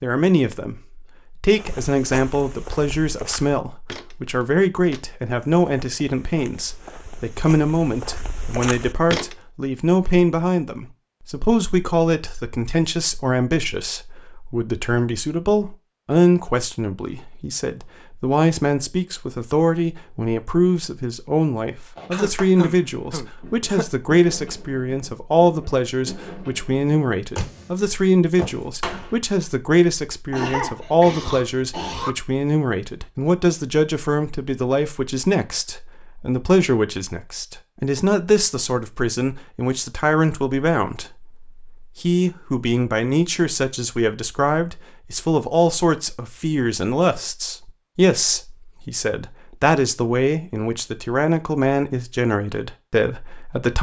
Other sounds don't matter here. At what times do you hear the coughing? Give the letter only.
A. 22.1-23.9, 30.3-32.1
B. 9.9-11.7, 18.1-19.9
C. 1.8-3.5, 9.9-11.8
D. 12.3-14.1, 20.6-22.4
A.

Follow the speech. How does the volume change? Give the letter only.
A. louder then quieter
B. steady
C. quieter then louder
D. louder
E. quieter
B.